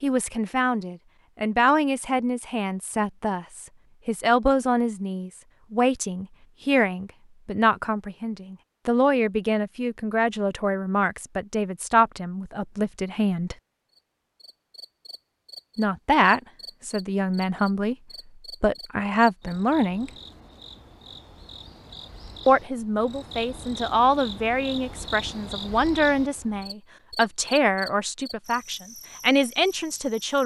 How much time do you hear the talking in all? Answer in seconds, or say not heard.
25 s.